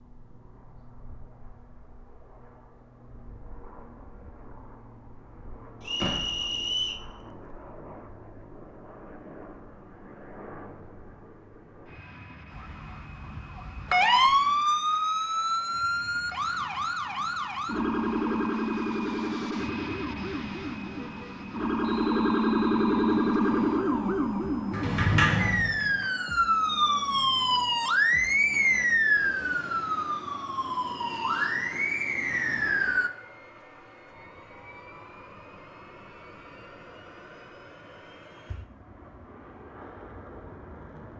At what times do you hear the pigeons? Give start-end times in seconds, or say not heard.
not heard.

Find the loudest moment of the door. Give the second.
25 s.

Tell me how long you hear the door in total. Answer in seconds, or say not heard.
2 s.